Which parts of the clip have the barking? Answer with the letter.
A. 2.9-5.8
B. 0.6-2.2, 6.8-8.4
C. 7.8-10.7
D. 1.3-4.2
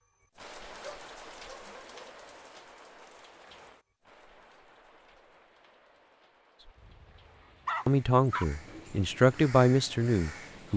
B.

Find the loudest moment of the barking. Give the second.
8 s.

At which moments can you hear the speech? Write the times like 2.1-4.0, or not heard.
7.8-10.7.